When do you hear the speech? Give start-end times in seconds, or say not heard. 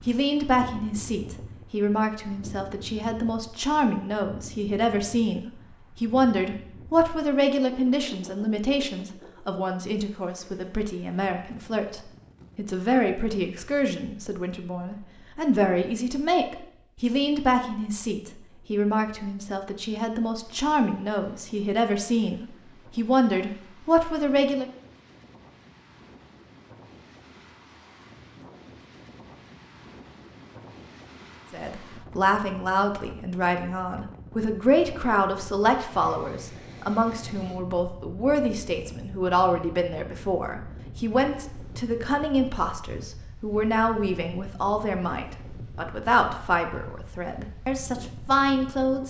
0.0-24.7, 31.5-49.0.